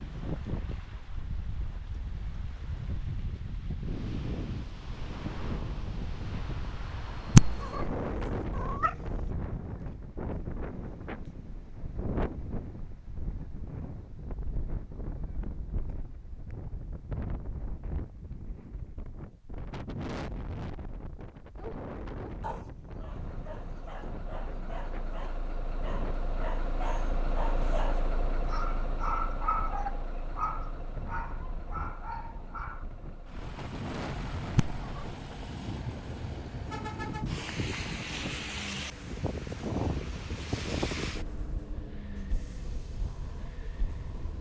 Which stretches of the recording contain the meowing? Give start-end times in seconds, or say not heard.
7.3-8.0, 8.6-9.0, 34.5-35.1.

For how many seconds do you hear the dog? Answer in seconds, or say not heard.
11 s.